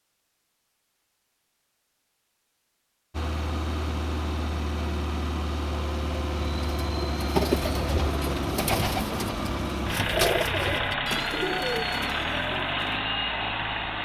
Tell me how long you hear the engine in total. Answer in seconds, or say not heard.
11 s.